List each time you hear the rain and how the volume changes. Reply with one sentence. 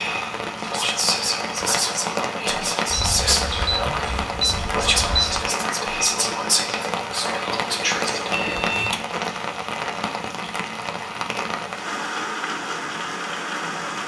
You can hear the rain from 0.0 to 14.0 s, at a steady volume.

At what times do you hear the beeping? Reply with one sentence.
You can hear the beeping from 2.9 to 5.5 s and from 8.3 to 9.0 s.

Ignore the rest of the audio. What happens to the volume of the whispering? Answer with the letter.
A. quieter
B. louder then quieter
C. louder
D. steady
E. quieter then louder
D.